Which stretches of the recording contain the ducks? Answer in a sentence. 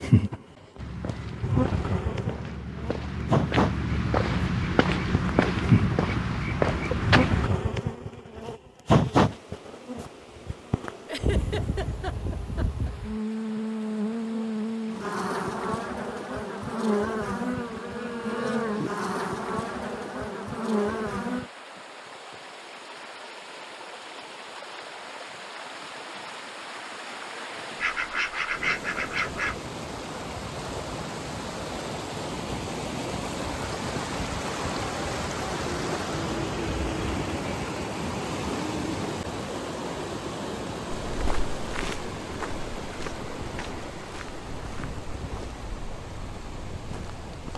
You can hear the ducks from 27.8 to 29.6 s.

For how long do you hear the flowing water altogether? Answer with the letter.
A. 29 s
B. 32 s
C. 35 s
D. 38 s
D.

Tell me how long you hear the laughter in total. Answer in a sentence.
You can hear the laughter for 2 seconds altogether.